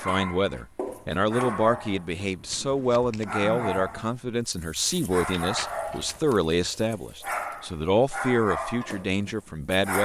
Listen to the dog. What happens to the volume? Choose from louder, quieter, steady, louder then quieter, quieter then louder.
steady.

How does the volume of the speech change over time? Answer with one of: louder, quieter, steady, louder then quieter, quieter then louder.
steady.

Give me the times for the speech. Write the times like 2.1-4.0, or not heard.
0.0-10.0.